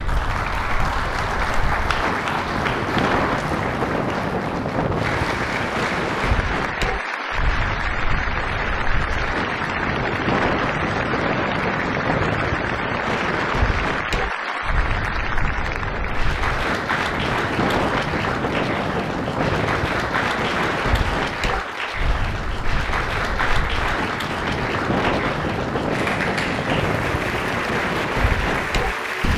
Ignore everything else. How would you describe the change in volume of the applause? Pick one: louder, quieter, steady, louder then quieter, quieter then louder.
steady.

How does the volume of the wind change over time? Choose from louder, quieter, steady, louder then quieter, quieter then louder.
steady.